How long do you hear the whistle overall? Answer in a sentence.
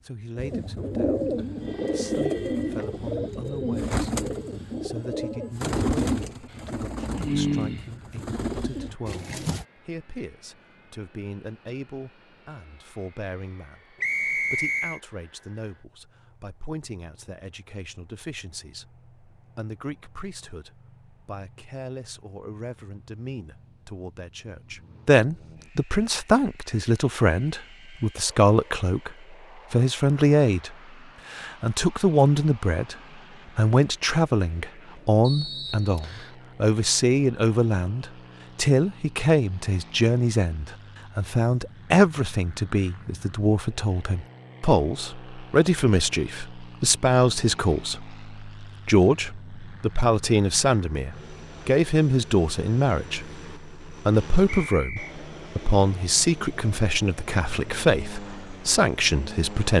The whistle can be heard for 3 seconds in total.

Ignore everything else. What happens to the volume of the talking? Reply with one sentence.
The volume of the talking goes up.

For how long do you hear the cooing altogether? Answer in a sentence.
You can hear the cooing for 9 seconds altogether.